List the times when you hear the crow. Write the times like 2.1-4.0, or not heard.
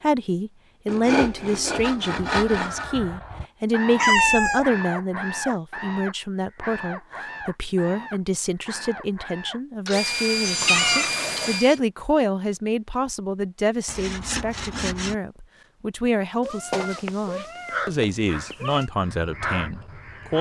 2.2-9.6, 17.6-20.3.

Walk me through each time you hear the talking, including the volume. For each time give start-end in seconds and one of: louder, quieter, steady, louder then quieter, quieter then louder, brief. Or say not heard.
0.0-20.3 steady.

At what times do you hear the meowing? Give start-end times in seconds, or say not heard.
4.0-4.7, 10.6-11.6, 16.4-18.9.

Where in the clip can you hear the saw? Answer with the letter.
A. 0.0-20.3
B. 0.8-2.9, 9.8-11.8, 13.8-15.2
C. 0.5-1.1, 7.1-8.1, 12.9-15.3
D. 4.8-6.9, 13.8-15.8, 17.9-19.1
B.